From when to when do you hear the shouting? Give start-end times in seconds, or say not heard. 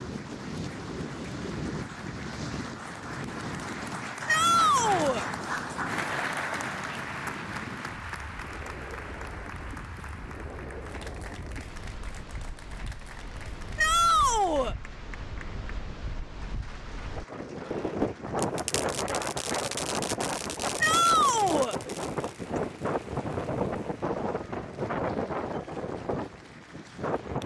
4.2-5.2, 13.8-14.8, 20.8-21.8.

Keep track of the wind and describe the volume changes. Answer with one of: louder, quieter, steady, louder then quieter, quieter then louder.
quieter then louder.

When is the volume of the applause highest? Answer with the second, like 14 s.
6 s.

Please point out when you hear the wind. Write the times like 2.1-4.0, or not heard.
0.0-27.4.